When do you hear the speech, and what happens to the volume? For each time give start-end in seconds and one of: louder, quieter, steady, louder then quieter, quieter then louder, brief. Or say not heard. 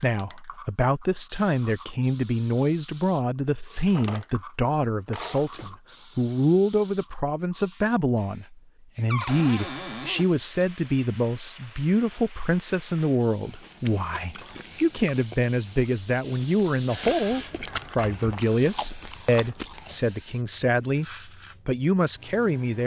0.0-22.8 steady.